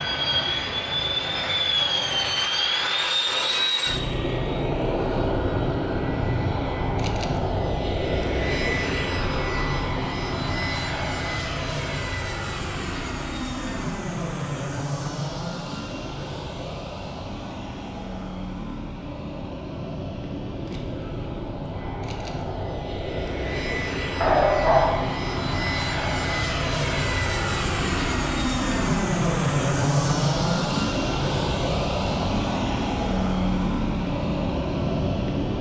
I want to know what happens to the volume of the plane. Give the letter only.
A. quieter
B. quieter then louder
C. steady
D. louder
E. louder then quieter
B.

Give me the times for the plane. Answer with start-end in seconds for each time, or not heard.
0.0-35.5.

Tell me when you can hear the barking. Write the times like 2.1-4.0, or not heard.
24.2-25.1.